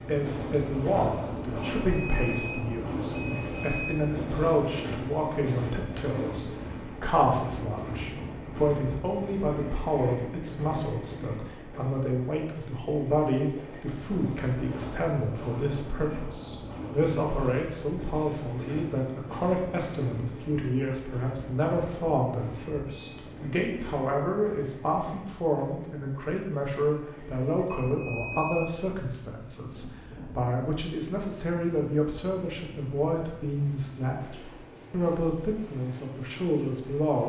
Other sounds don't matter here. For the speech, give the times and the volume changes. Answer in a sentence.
The speech can be heard from 0.1 to 37.2 s, at a steady volume.